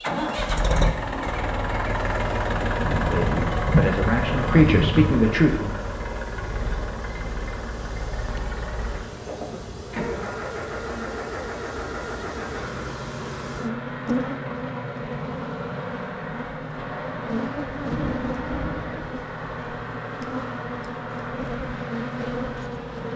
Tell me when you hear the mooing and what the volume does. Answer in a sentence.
You can't hear the mooing here.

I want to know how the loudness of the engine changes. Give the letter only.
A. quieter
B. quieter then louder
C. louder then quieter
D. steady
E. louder
A.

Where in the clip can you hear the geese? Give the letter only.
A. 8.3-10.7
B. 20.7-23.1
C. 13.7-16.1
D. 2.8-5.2
D.